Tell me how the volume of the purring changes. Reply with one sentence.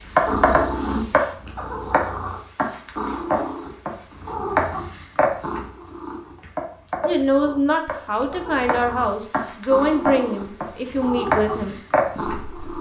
The volume of the purring goes down, then up.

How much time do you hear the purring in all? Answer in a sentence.
The purring can be heard for 13 seconds in total.